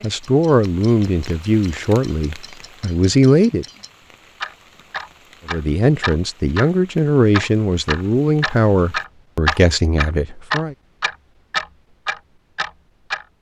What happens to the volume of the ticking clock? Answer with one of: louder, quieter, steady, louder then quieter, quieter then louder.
louder.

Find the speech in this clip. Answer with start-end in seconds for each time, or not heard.
0.0-3.6, 5.5-10.8.